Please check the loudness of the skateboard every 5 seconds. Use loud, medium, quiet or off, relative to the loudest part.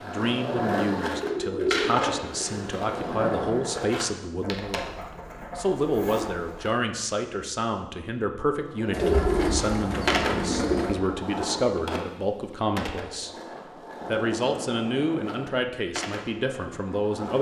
loud, medium, loud, medium.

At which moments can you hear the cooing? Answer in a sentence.
You can hear the cooing from 0.6 to 2.4 s, from 4.4 to 6.7 s, from 8.9 to 10.9 s and from 14.0 to 15.6 s.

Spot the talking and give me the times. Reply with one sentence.
You can hear the talking from 0.0 to 13.3 s and from 14.1 to 17.3 s.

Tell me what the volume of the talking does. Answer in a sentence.
The volume of the talking stays about the same.